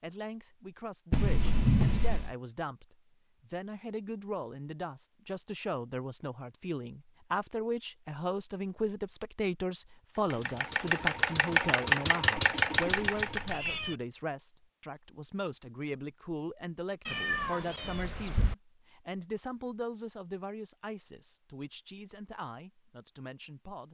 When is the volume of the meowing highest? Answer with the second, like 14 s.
2 s.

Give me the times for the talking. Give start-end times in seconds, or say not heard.
0.0-23.8.